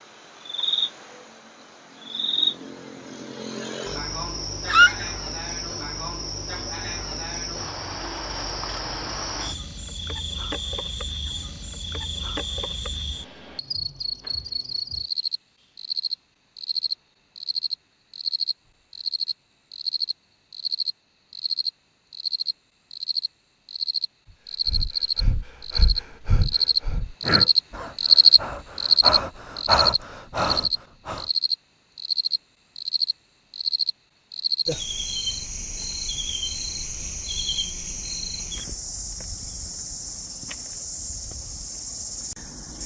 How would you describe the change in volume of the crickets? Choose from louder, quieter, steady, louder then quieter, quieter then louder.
louder then quieter.